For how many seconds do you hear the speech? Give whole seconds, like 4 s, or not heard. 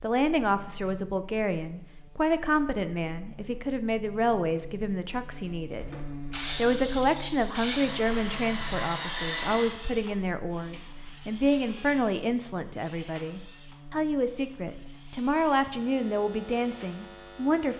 17 s.